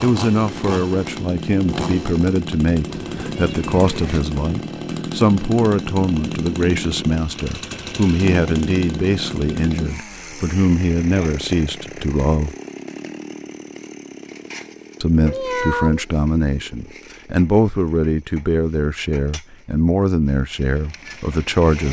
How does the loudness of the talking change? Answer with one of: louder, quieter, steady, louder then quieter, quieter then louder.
steady.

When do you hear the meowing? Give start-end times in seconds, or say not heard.
2.9-4.2, 15.2-16.1.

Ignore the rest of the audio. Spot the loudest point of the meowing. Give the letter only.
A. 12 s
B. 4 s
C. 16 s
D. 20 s
C.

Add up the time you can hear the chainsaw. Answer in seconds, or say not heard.
22 s.